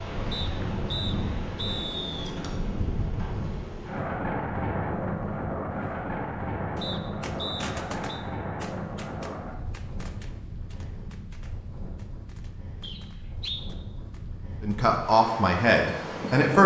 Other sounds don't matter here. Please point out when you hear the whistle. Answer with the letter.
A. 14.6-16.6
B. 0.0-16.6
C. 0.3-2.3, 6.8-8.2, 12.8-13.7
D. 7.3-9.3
C.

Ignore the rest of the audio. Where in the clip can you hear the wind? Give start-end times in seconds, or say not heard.
0.0-16.6.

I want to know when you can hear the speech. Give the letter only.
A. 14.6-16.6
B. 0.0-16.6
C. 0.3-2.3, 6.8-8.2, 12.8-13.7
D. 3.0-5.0
A.